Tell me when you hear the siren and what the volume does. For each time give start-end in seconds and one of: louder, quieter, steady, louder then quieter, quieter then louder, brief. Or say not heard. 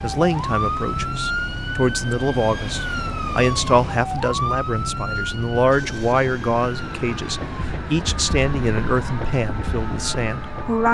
0.0-10.8 quieter.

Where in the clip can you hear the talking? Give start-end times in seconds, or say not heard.
0.0-10.8.